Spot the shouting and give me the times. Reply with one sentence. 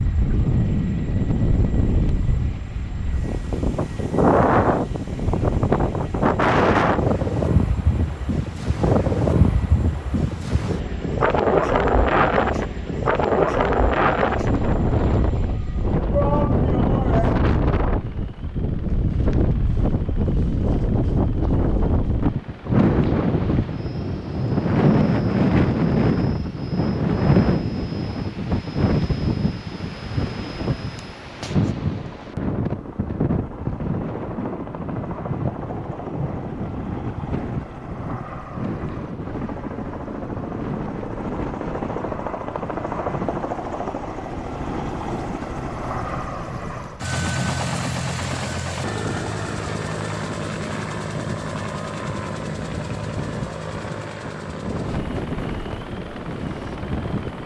You can hear the shouting from 16.1 to 17.4 s.